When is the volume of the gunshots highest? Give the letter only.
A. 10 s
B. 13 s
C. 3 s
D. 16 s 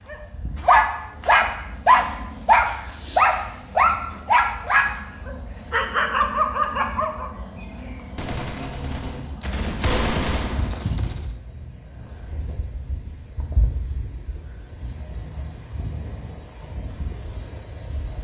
A.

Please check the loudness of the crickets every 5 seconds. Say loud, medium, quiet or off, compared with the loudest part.
medium, medium, medium, loud.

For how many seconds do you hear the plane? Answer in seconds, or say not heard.
not heard.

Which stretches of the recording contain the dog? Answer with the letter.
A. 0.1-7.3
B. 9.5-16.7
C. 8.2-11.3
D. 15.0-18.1
A.